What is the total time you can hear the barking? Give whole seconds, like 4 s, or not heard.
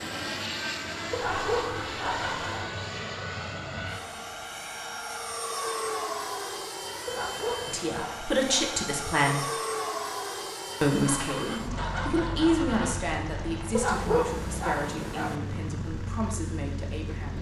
5 s.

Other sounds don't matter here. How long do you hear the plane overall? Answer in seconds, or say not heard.
17 s.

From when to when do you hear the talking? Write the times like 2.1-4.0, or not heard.
7.7-9.4, 10.8-17.3.